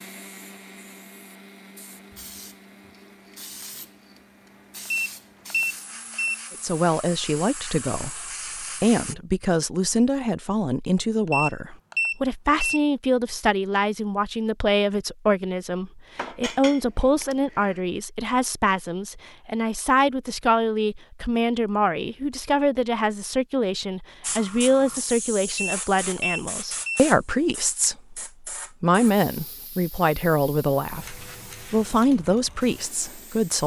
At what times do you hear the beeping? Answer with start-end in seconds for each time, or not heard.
4.9-6.3, 11.3-12.8, 25.6-27.1.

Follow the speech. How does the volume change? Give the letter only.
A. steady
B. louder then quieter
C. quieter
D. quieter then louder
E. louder
A.